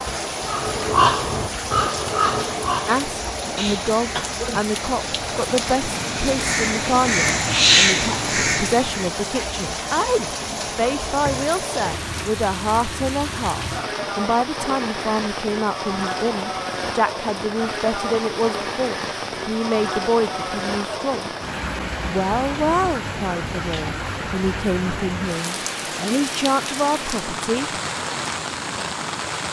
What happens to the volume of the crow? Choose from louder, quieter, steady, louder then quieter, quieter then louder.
quieter then louder.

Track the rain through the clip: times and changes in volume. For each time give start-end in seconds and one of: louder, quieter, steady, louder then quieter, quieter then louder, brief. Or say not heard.
0.0-29.4 steady.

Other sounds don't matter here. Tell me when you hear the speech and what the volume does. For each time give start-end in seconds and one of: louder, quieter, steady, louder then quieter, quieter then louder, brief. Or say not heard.
2.9-21.3 steady
22.0-27.7 quieter then louder.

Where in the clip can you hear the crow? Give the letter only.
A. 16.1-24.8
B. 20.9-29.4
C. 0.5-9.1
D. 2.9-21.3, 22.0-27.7
C.